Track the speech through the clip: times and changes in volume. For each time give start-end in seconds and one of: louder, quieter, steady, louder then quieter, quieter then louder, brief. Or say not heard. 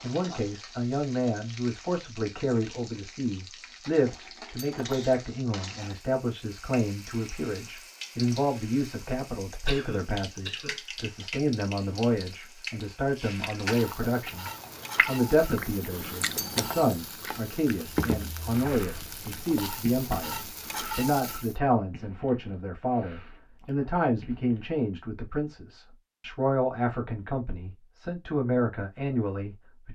0.0-29.9 steady.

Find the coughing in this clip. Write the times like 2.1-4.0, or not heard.
9.7-10.8.